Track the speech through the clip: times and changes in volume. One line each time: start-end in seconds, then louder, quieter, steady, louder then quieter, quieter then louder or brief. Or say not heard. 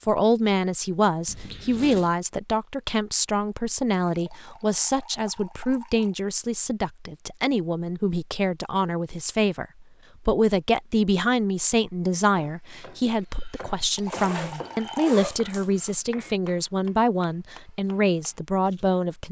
0.0-19.2 steady.